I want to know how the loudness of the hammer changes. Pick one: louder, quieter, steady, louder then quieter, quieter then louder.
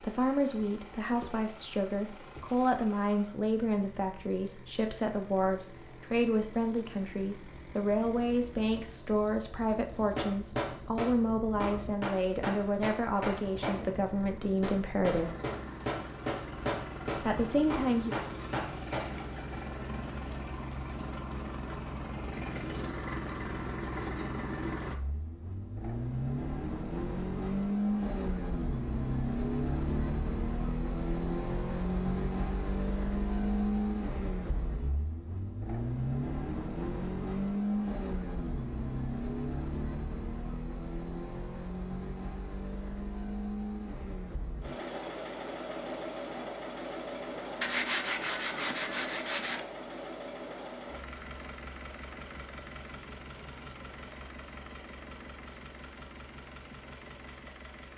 steady.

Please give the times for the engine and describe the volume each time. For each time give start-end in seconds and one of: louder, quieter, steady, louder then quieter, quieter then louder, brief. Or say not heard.
0.0-57.9 louder then quieter.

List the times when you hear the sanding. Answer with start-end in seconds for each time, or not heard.
47.6-49.6.